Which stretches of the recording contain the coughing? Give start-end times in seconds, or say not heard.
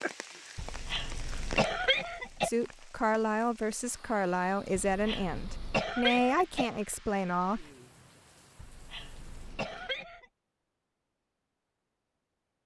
0.6-2.5, 4.8-6.7, 8.6-10.2.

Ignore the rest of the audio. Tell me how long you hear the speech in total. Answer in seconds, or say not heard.
5 s.